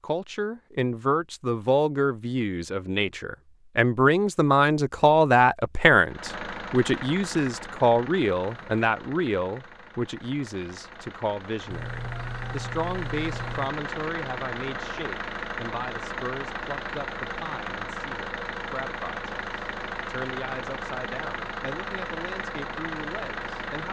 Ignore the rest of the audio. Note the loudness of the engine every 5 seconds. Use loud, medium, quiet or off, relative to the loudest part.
off, medium, loud, loud, loud.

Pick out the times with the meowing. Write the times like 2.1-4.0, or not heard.
11.7-13.7.